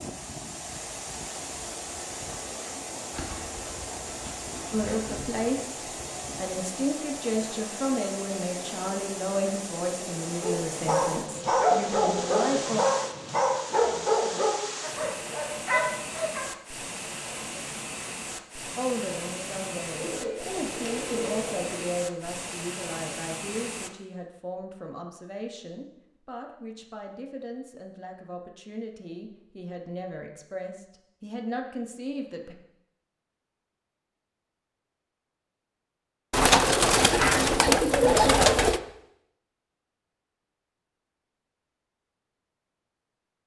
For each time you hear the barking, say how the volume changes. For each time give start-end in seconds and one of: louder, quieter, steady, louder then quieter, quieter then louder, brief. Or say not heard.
10.4-16.4 steady.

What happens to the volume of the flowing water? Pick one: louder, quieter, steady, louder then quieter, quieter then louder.
steady.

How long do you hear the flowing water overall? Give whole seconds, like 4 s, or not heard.
24 s.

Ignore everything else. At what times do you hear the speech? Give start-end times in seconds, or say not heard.
4.7-12.8, 18.8-32.5.